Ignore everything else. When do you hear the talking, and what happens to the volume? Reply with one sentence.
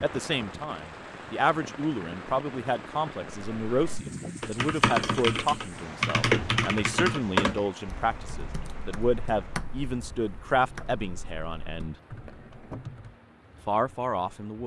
The talking can be heard from 0.0 to 11.9 s, at a steady volume; and briefly from 13.7 to 14.6 s.